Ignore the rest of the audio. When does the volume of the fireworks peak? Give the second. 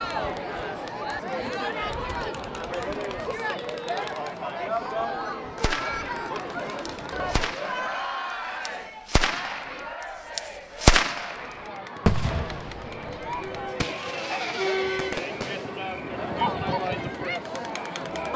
11 s.